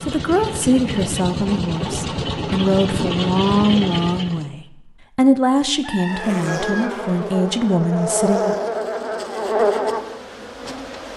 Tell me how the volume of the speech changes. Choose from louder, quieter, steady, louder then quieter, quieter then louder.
steady.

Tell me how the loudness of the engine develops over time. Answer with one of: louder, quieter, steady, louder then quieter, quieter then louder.
steady.